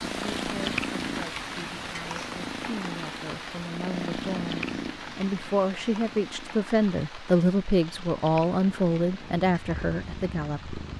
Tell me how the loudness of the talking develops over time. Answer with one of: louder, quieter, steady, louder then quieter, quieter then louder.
louder.